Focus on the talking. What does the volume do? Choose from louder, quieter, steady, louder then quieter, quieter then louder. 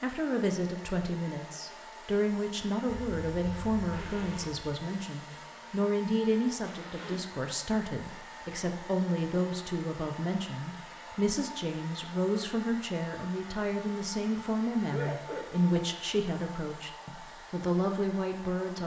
steady.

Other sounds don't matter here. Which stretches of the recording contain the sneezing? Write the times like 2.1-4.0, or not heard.
2.9-4.7, 6.6-7.2, 14.9-15.8.